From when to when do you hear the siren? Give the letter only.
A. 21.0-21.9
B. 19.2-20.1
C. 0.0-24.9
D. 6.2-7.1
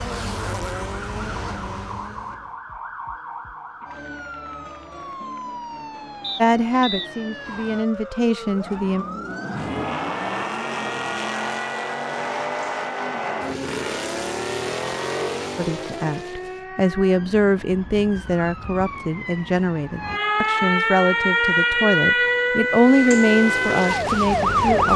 C.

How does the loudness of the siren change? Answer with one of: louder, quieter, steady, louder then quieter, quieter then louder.
louder.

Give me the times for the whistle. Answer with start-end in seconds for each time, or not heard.
6.2-7.1.